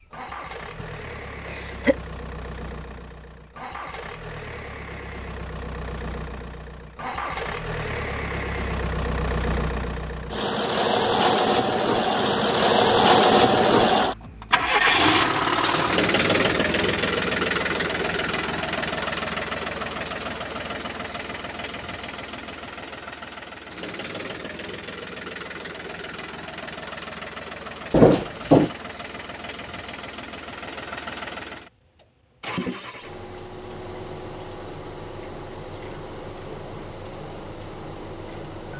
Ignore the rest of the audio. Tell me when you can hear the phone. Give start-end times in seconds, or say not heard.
not heard.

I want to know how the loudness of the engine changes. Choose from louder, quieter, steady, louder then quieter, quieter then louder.
louder then quieter.